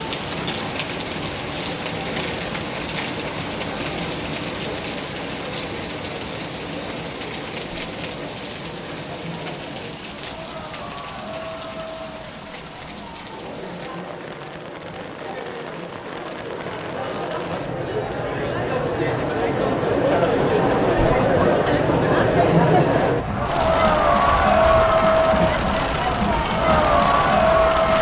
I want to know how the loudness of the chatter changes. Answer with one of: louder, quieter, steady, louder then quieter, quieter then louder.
louder.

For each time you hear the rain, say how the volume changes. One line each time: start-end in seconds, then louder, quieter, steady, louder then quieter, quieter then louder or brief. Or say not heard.
0.0-27.9 quieter then louder.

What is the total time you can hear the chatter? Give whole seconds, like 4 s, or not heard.
28 s.